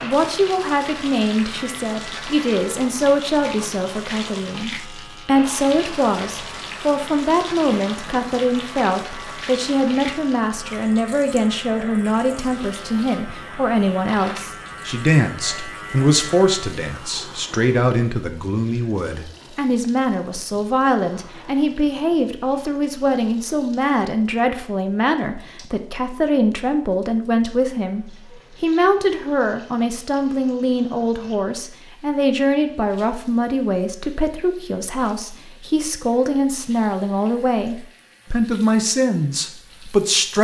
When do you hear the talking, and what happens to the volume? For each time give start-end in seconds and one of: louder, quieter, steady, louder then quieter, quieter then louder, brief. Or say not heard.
0.0-40.3 steady.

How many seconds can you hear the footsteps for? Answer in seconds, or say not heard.
not heard.